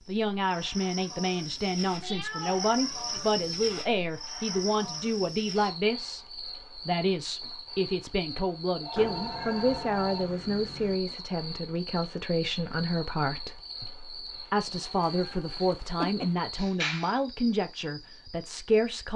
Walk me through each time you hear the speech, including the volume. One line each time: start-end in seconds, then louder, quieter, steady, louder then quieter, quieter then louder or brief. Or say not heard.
0.1-19.1 steady.